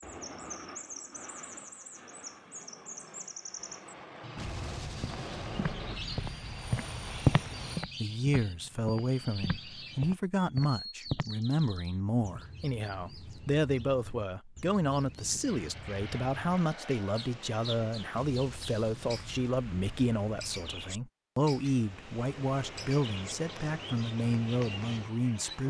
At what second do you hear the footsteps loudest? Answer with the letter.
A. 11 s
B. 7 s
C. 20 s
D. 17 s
B.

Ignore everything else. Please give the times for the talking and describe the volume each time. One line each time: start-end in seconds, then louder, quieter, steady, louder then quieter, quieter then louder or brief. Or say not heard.
8.0-25.6 steady.